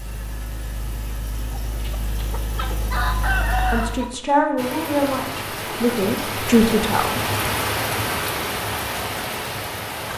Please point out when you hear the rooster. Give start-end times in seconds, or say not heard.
1.1-4.0.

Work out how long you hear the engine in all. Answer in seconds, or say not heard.
4 s.